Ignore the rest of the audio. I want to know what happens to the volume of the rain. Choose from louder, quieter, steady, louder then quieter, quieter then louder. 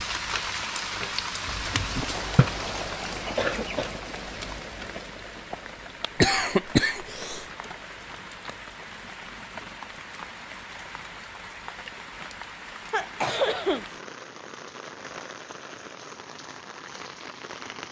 quieter.